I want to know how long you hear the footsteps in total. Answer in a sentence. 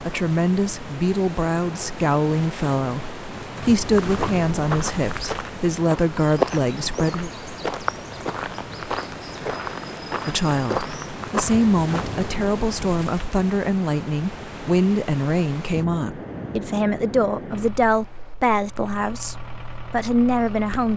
The footsteps can be heard for 8 seconds in total.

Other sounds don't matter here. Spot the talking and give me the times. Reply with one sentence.
The talking can be heard from 0.1 to 7.3 s and from 10.2 to 20.9 s.